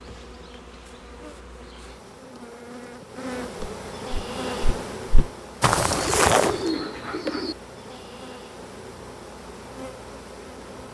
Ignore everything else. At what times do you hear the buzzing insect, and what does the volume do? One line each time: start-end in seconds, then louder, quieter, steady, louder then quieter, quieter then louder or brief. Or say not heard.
0.0-10.8 louder then quieter.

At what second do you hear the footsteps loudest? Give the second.
6 s.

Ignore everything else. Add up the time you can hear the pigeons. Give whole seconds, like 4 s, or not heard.
2 s.